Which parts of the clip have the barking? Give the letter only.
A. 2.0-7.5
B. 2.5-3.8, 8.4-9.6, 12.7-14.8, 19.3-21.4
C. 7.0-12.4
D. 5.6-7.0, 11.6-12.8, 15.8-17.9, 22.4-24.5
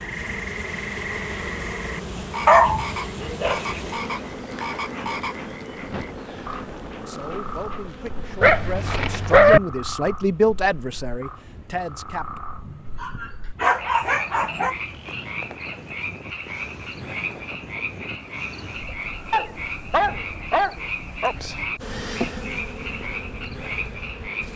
B.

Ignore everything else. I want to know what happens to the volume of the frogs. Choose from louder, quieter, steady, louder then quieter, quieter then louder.
steady.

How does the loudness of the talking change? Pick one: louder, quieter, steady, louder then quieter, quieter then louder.
louder then quieter.